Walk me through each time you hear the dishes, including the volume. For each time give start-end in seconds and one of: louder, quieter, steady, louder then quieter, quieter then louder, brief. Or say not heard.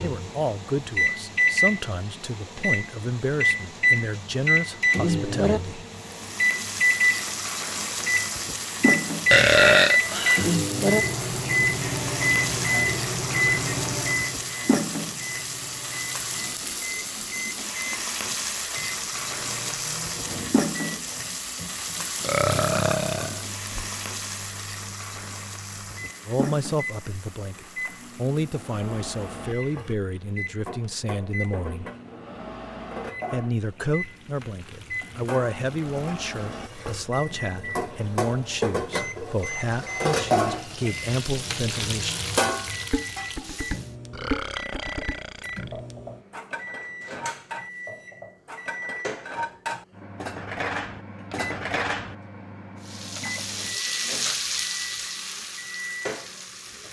42.9-52.1 quieter then louder.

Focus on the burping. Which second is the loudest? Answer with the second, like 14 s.
10 s.